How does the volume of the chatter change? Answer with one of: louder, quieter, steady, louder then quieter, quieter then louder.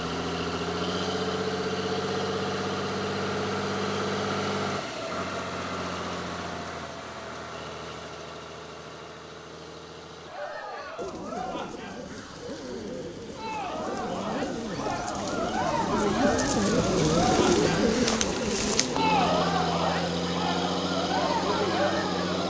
louder.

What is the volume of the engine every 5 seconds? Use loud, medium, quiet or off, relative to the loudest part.
loud, medium, quiet, loud, loud.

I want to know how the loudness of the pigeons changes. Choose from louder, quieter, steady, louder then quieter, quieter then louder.
louder.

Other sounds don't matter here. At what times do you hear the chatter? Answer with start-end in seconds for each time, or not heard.
10.2-22.4.